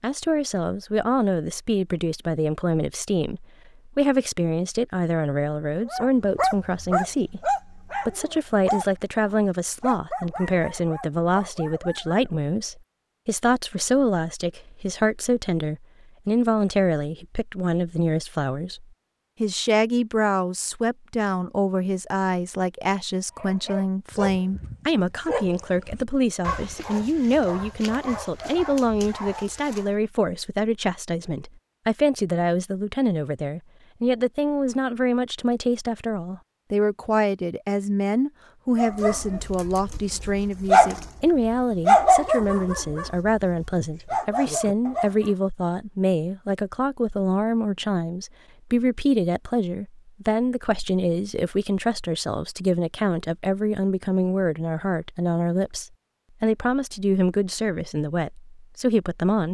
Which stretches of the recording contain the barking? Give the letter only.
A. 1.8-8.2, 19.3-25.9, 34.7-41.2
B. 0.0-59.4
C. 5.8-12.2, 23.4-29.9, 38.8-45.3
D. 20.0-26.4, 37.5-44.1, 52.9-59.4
C.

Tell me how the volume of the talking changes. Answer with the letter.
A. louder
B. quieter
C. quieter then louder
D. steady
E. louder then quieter
D.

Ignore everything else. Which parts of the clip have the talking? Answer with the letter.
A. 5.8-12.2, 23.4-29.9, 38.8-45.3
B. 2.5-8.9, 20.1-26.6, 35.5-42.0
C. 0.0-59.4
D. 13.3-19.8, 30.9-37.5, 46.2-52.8
C.